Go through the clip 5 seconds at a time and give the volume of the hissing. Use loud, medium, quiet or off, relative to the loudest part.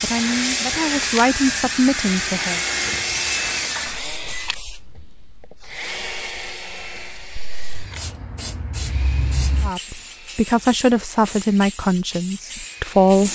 loud, medium, medium.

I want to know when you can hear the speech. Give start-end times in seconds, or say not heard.
0.0-2.6, 9.6-13.3.